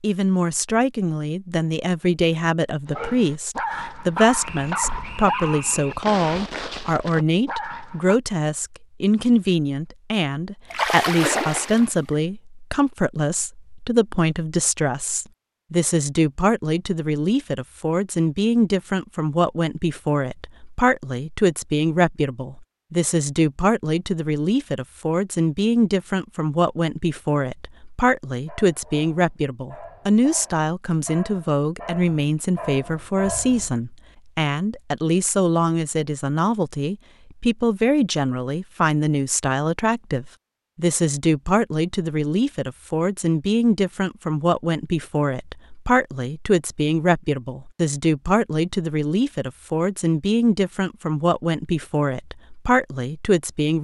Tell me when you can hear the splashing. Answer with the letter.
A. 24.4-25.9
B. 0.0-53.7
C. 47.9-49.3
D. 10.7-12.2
D.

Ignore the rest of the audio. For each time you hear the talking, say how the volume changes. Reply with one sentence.
You can hear the talking from 0.0 to 53.7 s, at a steady volume.